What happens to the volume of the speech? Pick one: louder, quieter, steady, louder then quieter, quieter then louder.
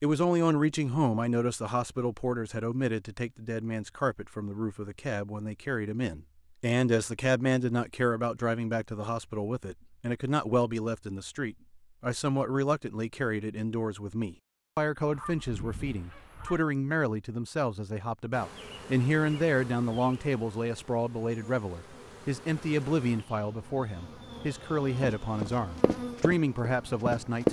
steady.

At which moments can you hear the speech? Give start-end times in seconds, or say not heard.
0.0-27.4.